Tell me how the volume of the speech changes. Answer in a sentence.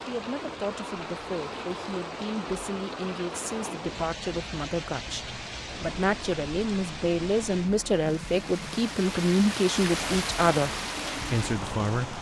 The volume of the speech goes up.